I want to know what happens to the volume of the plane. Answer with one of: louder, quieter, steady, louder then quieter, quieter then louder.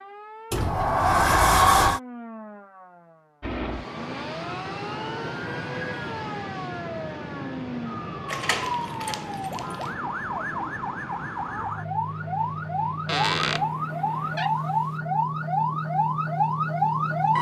quieter.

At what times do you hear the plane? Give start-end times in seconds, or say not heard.
3.4-14.4.